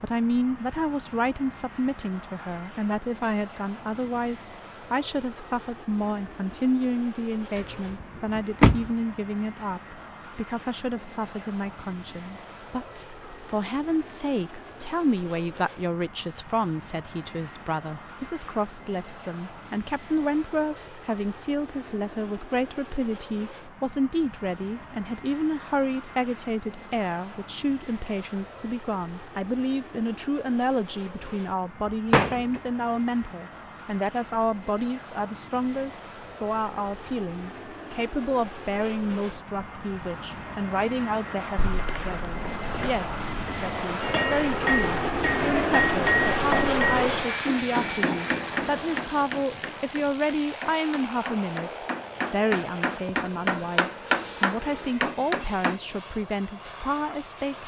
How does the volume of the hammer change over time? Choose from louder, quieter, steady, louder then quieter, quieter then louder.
quieter then louder.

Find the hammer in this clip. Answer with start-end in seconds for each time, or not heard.
44.0-55.8.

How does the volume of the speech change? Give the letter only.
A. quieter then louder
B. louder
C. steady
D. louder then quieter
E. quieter
C.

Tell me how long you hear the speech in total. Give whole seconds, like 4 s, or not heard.
57 s.